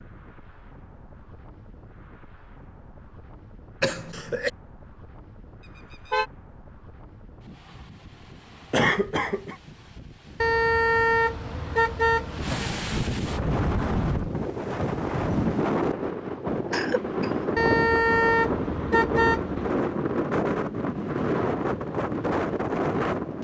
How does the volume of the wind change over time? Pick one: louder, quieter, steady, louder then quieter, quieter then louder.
louder.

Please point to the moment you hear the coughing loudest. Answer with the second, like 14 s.
9 s.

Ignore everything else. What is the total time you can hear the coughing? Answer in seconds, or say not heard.
2 s.